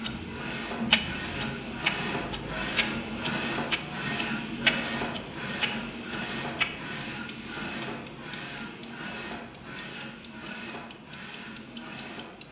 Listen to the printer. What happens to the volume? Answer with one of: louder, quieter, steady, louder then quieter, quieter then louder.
quieter.